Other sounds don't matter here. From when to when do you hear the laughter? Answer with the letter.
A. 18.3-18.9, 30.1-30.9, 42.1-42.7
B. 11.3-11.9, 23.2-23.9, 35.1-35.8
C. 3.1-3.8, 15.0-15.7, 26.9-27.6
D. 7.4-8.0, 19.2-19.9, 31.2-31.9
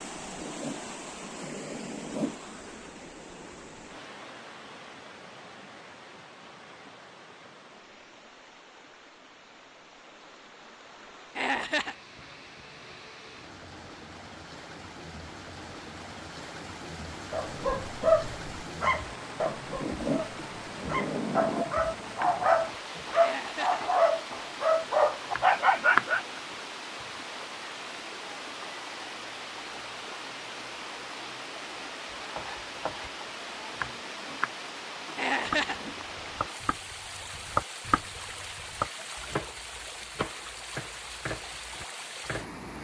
B.